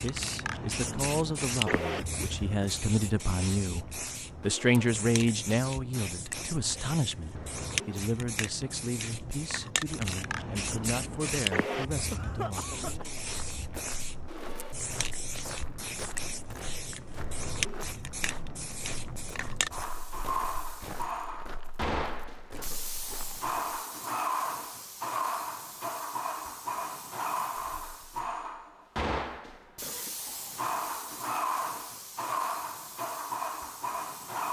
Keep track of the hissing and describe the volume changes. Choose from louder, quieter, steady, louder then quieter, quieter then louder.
steady.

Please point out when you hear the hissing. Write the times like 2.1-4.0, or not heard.
0.0-34.4.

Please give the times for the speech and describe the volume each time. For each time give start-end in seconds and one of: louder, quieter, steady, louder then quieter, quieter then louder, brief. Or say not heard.
0.0-13.1 louder then quieter.